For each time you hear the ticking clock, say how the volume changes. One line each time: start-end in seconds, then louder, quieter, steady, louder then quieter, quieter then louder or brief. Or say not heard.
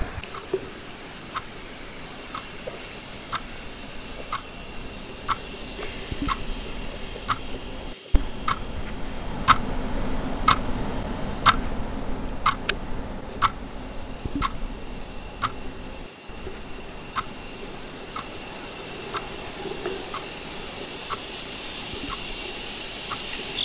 0.1-23.4 louder then quieter.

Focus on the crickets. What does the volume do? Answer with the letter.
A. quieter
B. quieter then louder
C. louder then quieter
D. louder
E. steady
B.